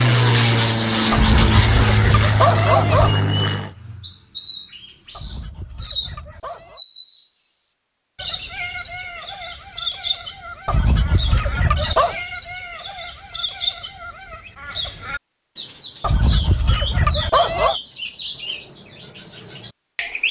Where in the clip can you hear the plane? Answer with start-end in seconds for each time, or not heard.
0.0-3.8.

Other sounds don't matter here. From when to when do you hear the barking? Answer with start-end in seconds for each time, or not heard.
1.1-3.1, 5.2-6.8, 10.7-12.2, 16.0-17.8.